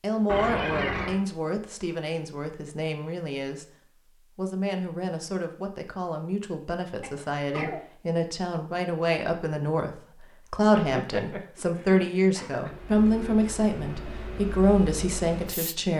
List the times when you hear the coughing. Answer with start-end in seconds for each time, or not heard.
0.2-1.2, 7.0-7.8, 10.8-12.8.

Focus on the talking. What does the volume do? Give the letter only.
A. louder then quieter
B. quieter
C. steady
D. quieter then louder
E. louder
E.